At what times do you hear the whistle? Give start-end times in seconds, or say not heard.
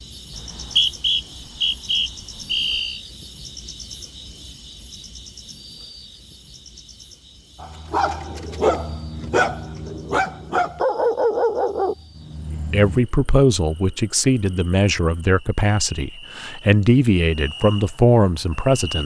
0.3-3.0.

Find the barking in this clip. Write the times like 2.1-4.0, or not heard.
7.6-13.0.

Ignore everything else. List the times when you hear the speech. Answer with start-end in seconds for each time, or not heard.
12.5-19.0.